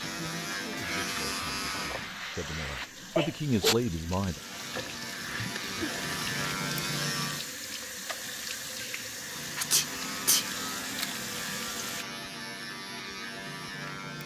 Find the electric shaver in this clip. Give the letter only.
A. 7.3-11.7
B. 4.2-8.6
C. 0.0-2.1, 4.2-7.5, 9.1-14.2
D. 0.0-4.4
C.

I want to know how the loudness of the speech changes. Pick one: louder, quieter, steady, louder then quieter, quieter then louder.
louder.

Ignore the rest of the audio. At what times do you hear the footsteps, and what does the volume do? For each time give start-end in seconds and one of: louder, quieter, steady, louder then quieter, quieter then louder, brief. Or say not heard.
not heard.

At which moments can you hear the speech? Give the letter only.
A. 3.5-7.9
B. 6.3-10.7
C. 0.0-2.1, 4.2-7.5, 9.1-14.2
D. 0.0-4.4
D.